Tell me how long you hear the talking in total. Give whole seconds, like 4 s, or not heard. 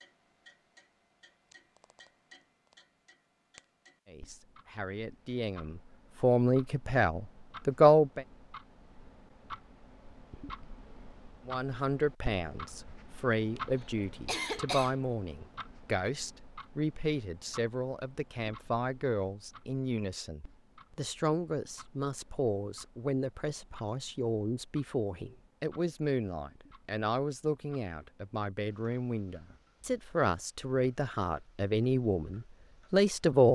26 s.